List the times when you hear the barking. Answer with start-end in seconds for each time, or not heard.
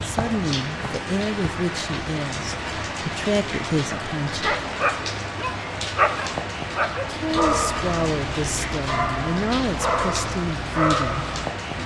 3.9-11.8.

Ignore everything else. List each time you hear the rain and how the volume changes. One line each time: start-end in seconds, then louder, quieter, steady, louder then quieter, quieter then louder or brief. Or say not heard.
0.0-11.8 steady.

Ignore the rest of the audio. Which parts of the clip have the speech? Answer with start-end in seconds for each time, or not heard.
0.0-4.5, 7.0-11.2.